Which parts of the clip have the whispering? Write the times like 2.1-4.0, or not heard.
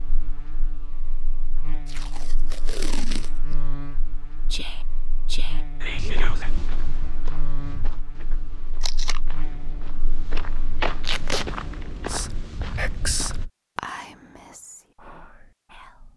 4.5-6.5, 12.1-16.1.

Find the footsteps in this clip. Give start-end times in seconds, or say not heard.
5.9-13.4.